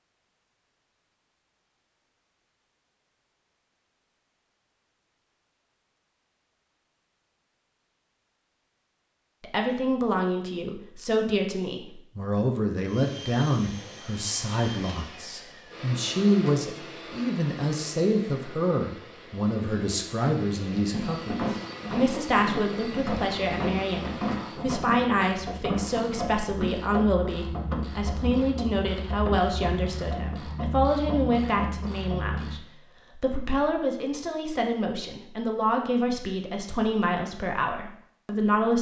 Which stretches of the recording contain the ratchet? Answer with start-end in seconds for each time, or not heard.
20.9-32.6.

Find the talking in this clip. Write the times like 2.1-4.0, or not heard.
9.4-38.7.